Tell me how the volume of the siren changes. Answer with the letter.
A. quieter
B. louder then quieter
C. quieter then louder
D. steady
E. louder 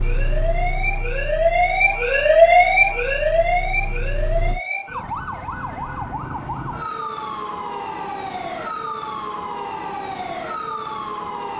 A.